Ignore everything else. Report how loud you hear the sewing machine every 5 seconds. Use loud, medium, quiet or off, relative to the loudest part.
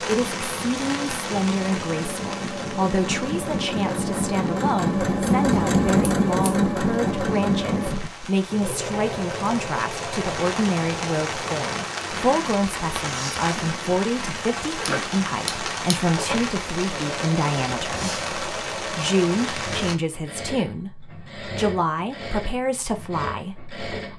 medium, loud, medium, medium, quiet.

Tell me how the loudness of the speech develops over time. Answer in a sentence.
The volume of the speech stays about the same.